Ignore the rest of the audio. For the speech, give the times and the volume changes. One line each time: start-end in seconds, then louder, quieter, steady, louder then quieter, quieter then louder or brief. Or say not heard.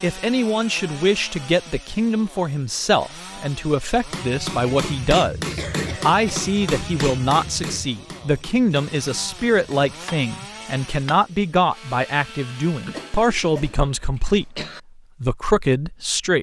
0.0-16.3 steady.